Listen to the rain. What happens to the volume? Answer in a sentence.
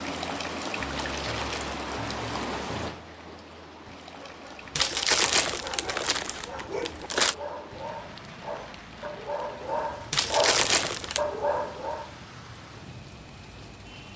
The volume of the rain goes down.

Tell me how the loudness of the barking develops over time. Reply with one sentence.
The loudness of the barking goes up.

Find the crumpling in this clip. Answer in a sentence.
The crumpling can be heard from 1.1 to 1.8 s, from 4.8 to 7.3 s and from 10.1 to 11.2 s.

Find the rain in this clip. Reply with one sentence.
You can hear the rain from 0.0 to 14.1 s.